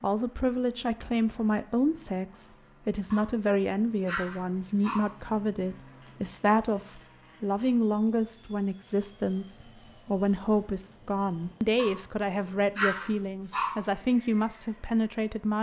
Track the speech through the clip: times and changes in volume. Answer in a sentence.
You can hear the speech from 0.0 to 15.5 s, at a steady volume.